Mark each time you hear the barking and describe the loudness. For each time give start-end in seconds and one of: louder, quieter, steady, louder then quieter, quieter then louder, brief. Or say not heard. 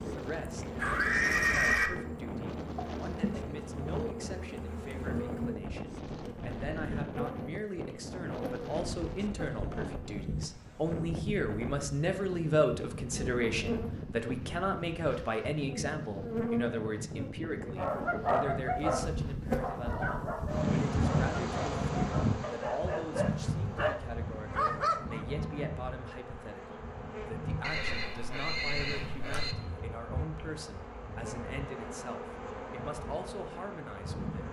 17.8-25.2 quieter then louder.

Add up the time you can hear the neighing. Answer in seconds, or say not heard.
3 s.